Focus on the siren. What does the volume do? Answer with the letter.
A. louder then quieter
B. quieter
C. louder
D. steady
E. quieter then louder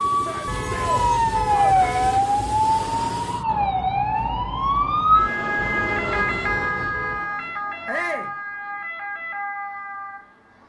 B.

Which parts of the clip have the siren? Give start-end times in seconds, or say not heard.
0.0-10.6.